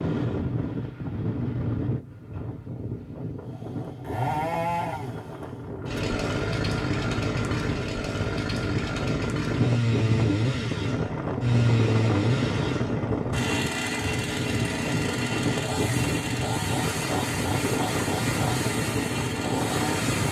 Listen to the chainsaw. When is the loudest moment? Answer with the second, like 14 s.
12 s.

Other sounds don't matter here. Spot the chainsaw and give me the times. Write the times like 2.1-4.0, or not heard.
3.5-20.2.